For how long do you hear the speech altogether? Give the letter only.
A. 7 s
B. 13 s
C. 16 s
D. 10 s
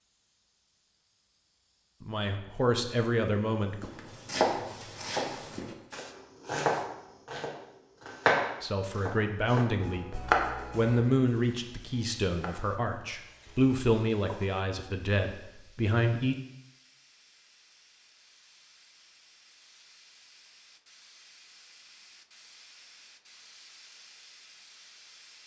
D.